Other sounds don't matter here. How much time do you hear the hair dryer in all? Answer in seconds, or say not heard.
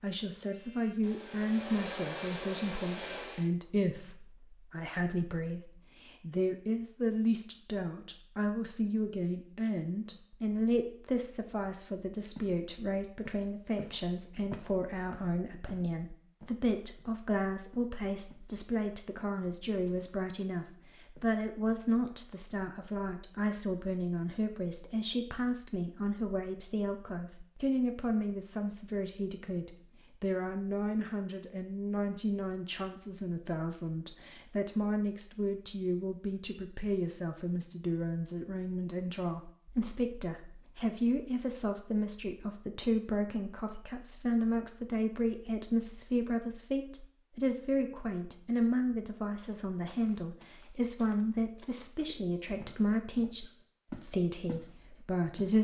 3 s.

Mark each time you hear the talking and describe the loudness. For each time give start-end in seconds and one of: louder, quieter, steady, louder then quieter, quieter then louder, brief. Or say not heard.
0.0-55.5 steady.